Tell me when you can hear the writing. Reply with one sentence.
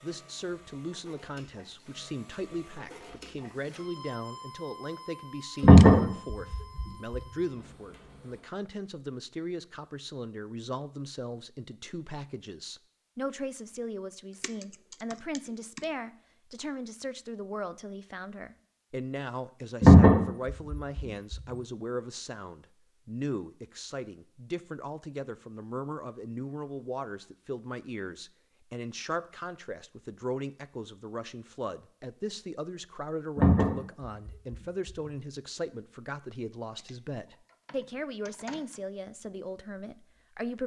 You can't hear the writing here.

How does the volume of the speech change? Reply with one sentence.
The loudness of the speech stays about the same.